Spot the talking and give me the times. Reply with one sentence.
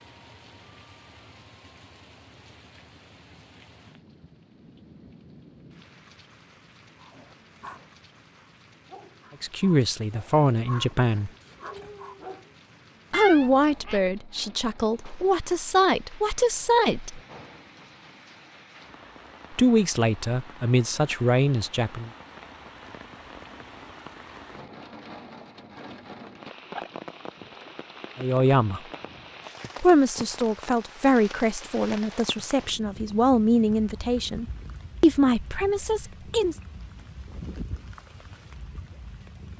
You can hear the talking from 9.4 to 11.3 s, from 13.1 to 17.2 s, from 19.5 to 22.1 s, from 28.1 to 28.8 s and from 29.8 to 36.5 s.